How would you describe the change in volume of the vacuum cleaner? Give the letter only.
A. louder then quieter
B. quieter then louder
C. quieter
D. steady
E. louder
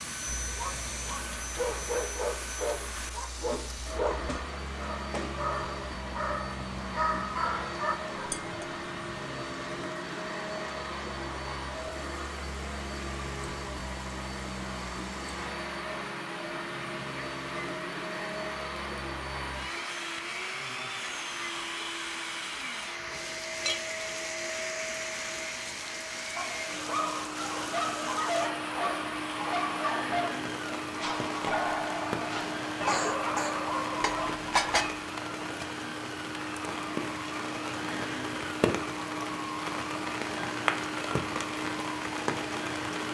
D.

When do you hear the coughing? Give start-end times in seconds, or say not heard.
32.9-33.6.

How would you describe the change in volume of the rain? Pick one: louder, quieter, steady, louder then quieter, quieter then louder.
louder.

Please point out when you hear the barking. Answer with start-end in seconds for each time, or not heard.
0.2-8.3, 26.4-34.4.